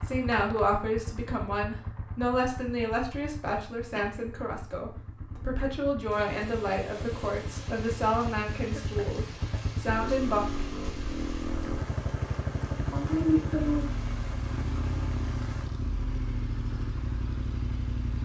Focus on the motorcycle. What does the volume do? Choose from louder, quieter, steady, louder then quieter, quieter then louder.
louder.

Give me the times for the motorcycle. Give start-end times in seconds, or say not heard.
0.0-18.1.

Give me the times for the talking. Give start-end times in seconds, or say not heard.
0.0-10.4.